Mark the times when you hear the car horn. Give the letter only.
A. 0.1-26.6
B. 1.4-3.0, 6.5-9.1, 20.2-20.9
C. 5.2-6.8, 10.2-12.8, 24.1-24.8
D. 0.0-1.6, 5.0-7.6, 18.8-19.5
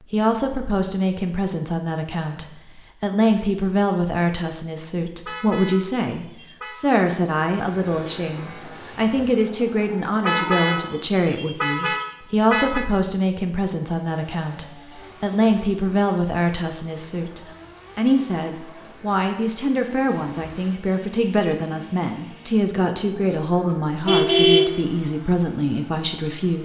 C.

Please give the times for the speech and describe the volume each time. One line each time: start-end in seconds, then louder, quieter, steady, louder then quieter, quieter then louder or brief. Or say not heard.
0.1-26.6 steady.